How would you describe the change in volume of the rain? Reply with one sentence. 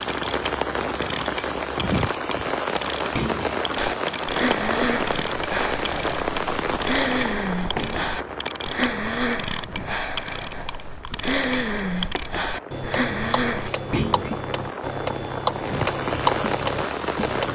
The loudness of the rain goes down, then up.